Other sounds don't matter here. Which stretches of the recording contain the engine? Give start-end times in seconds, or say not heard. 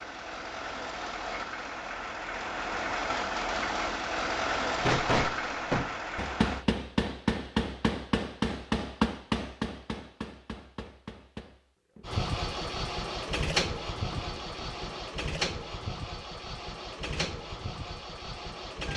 0.0-6.7, 12.0-18.9.